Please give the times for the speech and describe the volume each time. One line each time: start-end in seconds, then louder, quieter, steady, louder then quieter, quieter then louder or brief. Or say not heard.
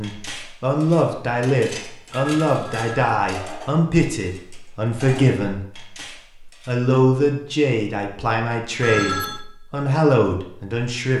0.0-11.1 steady.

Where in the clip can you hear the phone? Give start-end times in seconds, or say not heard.
2.1-3.0, 8.8-9.4.